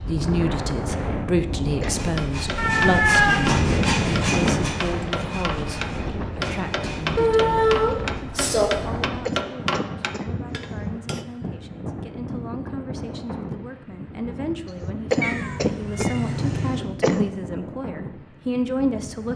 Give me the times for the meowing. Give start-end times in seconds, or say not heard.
2.5-4.6, 7.2-8.7, 15.2-16.9.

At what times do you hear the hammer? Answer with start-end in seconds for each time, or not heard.
1.7-11.2.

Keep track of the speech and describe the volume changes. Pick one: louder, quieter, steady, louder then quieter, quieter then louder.
quieter then louder.